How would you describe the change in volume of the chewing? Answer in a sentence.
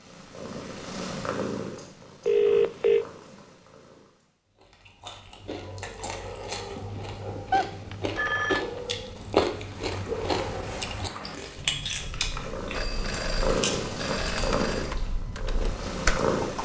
The volume of the chewing goes up, then down.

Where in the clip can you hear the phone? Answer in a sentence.
The phone can be heard from 2.2 to 3.0 s, from 7.5 to 8.7 s and from 12.7 to 14.9 s.